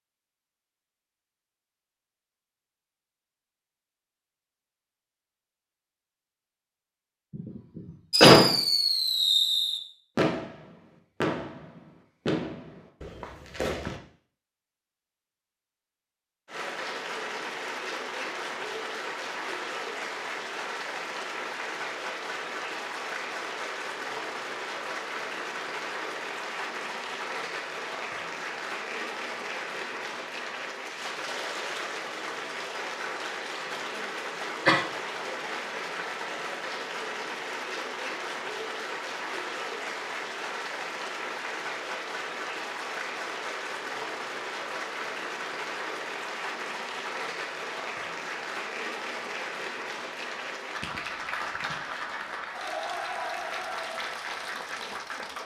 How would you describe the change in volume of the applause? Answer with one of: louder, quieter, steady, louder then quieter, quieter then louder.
steady.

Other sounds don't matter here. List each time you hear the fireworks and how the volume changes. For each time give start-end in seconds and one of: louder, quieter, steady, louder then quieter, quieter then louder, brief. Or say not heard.
8.1-14.0 quieter.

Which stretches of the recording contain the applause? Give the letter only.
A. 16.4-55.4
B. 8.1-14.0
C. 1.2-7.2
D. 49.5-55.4
A.